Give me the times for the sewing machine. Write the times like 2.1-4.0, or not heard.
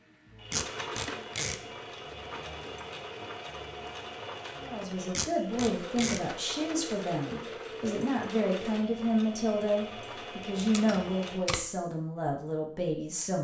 0.0-11.6.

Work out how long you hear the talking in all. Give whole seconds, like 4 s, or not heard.
9 s.